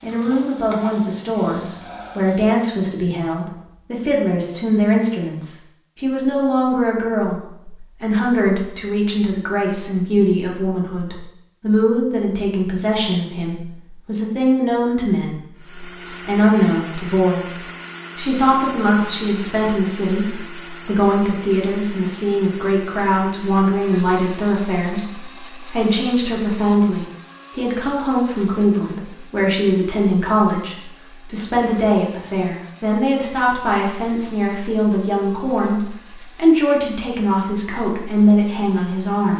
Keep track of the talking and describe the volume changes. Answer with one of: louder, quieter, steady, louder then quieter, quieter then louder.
steady.